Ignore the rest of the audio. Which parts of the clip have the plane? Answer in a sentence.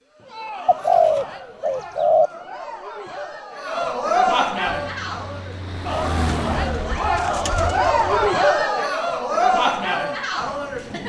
The plane can be heard from 4.7 to 8.3 s.